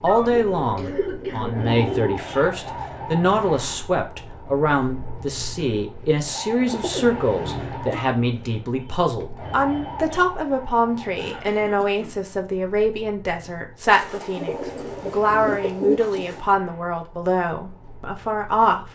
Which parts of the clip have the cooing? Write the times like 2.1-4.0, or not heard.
0.3-2.2, 6.7-8.1, 13.9-16.4.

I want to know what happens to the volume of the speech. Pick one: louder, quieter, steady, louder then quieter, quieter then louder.
steady.